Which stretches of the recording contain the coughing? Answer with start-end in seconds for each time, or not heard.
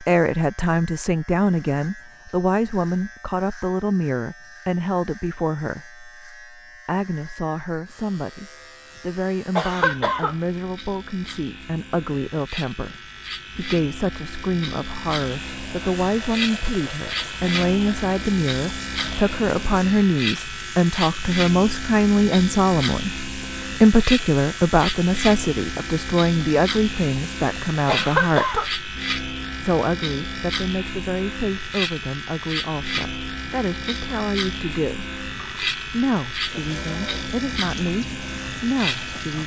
9.6-10.3, 27.9-28.7.